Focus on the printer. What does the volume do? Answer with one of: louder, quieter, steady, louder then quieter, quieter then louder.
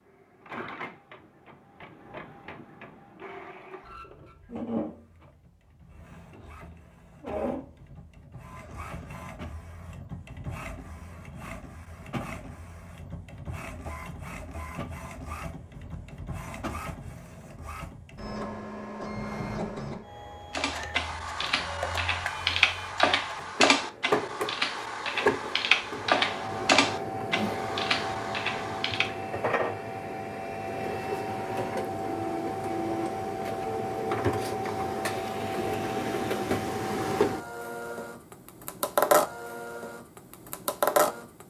louder.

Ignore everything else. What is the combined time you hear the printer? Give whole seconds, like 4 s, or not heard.
41 s.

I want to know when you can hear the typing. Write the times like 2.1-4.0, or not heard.
20.6-29.1.